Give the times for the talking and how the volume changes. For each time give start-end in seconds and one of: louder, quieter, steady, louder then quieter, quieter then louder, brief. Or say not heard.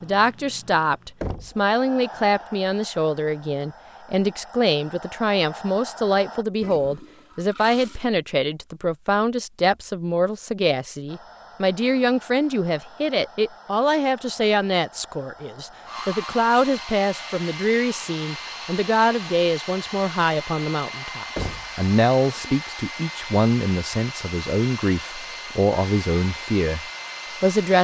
0.0-27.7 steady.